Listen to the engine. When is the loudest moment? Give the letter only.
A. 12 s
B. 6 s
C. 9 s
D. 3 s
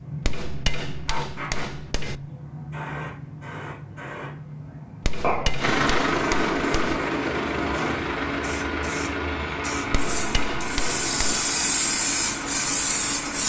B.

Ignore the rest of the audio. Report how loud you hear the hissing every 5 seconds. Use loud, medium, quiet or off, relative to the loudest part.
medium, medium, loud.